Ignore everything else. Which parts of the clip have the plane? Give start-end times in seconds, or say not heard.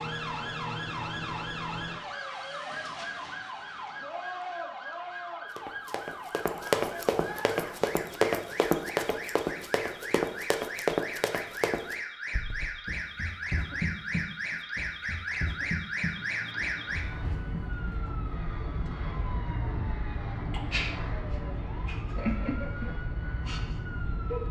16.1-24.4.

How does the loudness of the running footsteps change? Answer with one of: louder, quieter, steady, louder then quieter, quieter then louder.
quieter.